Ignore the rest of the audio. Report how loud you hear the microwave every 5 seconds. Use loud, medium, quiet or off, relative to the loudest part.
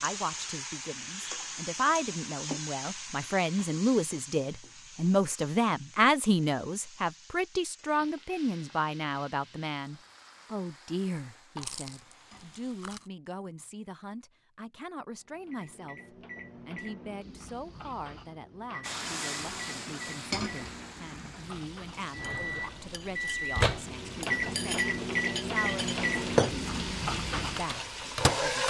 off, off, off, quiet, loud, loud.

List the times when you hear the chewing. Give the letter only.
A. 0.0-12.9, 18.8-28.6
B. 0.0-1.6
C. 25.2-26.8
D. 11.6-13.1
D.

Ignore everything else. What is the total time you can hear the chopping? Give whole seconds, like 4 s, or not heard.
not heard.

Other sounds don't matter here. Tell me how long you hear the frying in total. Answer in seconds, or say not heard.
23 s.